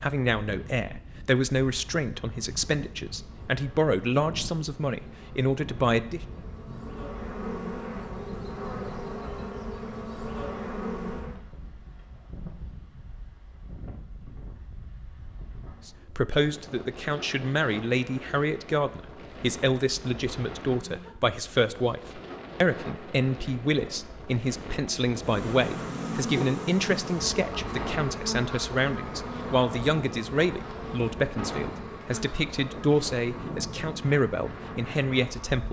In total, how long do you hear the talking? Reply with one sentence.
You can hear the talking for 26 seconds altogether.